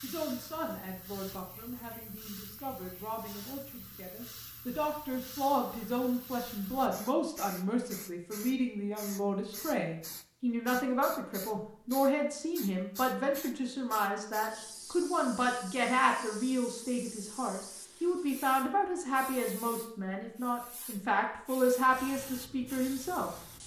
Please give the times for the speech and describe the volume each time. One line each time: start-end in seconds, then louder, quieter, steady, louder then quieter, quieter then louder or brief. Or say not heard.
0.0-23.3 louder.